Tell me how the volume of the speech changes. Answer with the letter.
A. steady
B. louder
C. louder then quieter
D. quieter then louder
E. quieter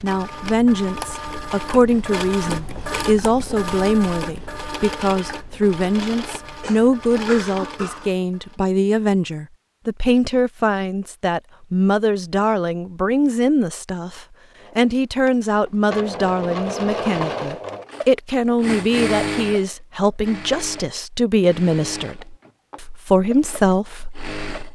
A.